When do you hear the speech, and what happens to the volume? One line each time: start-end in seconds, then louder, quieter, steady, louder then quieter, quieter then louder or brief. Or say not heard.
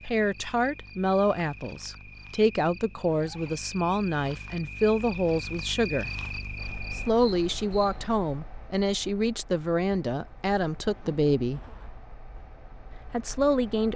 0.1-6.1 steady
6.9-11.7 steady
13.1-13.9 brief.